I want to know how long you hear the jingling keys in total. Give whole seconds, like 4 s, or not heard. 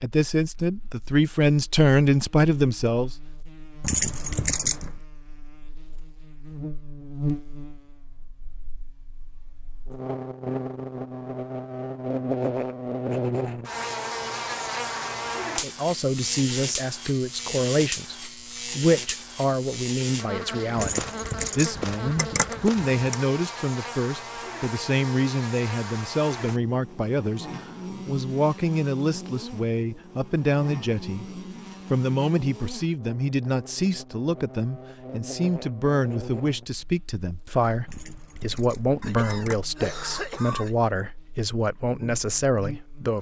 5 s.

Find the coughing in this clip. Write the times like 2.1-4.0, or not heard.
39.0-40.8.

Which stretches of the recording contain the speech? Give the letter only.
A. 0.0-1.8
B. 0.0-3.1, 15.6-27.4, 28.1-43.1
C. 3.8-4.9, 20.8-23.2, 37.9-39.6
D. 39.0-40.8
B.